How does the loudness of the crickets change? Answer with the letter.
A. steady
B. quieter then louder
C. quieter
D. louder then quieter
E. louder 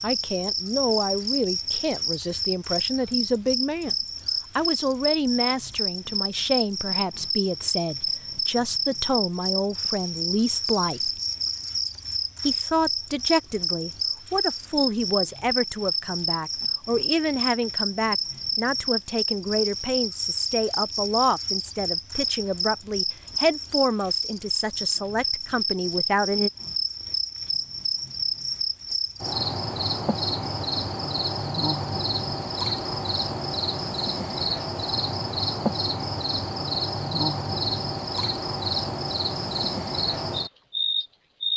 A.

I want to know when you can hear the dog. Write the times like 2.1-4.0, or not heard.
not heard.